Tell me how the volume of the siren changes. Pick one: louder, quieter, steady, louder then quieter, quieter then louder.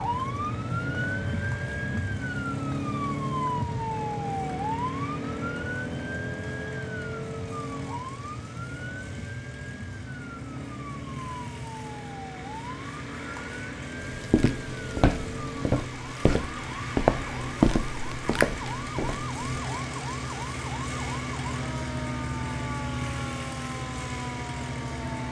quieter.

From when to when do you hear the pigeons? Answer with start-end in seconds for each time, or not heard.
not heard.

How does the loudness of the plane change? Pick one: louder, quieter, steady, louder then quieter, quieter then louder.
louder.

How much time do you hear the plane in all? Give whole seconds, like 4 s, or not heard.
25 s.